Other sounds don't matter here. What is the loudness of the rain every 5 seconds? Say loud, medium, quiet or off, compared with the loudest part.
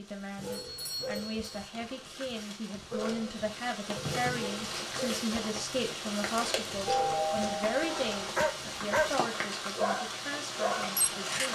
medium, loud, loud.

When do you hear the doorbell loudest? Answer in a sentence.
The volume of the doorbell peaks at 7 seconds.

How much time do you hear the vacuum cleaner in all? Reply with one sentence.
The vacuum cleaner can't be heard in this clip.